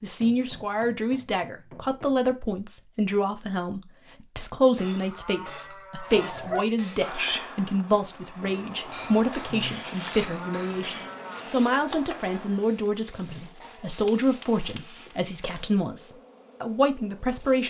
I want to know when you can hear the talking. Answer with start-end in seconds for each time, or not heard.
0.0-17.6.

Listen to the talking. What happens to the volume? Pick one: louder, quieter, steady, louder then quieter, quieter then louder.
steady.